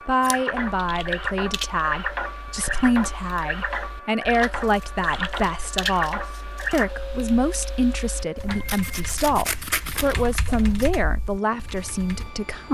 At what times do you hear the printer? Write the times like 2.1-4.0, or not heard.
0.0-12.6.